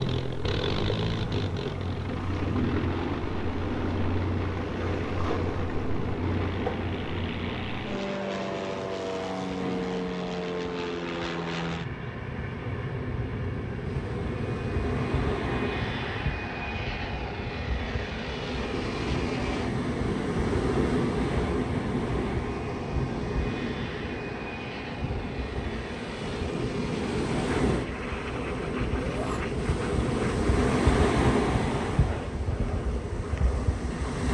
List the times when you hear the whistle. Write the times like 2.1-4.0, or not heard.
not heard.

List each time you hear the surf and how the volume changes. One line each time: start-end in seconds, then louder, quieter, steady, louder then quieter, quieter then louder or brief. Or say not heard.
0.2-34.2 louder.